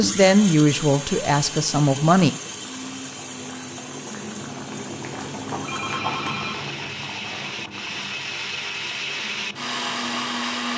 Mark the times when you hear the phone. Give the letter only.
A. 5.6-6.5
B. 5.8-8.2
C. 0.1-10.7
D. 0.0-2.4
A.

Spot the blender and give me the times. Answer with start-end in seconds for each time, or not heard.
0.0-10.7.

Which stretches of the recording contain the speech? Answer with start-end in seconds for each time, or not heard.
0.0-2.4.